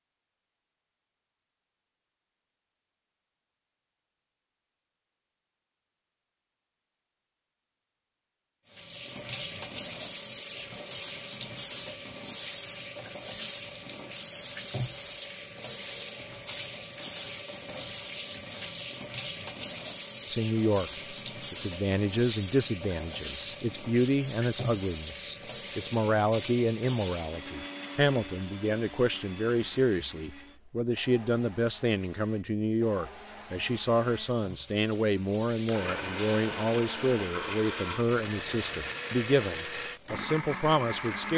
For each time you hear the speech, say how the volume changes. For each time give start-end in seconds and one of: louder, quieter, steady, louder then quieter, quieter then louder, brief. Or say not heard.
20.2-41.3 steady.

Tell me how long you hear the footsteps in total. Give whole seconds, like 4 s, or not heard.
not heard.